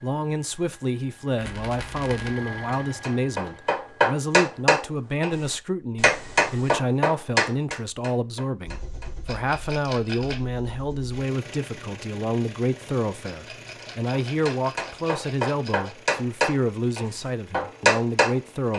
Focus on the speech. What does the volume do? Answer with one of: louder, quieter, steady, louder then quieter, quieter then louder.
steady.